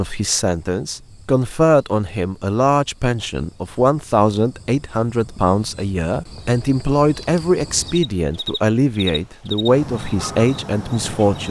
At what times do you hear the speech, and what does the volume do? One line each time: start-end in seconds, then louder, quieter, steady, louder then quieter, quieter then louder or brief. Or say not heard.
0.0-11.4 steady.